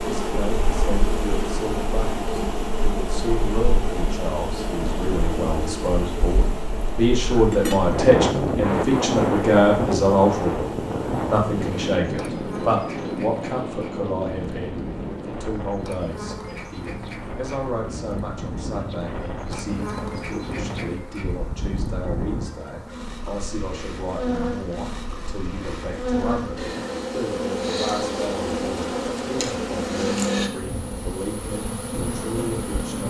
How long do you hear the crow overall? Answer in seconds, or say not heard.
not heard.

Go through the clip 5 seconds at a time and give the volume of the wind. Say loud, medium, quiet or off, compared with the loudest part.
medium, loud, loud, medium, medium, off, off.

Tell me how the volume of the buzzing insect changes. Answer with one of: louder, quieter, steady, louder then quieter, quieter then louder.
quieter then louder.